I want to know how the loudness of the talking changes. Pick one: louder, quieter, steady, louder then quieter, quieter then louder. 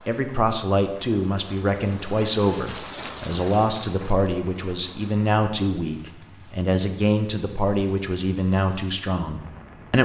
steady.